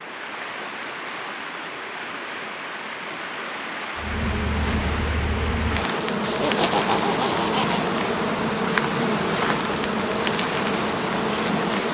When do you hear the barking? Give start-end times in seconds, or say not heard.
not heard.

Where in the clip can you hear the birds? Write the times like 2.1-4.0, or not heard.
not heard.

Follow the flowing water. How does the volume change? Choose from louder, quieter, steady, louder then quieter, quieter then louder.
steady.